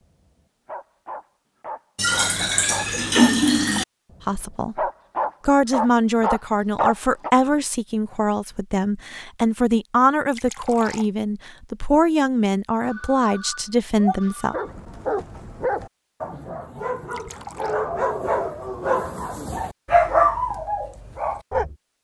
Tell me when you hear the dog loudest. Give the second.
20 s.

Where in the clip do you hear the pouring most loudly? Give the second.
3 s.